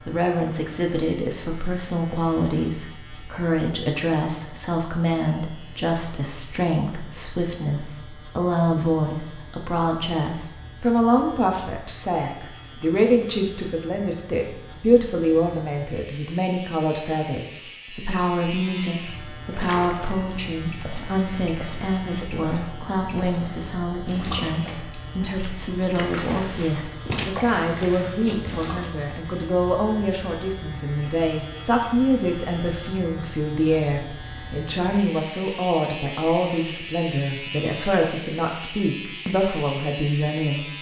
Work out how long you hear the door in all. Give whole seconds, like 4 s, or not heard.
2 s.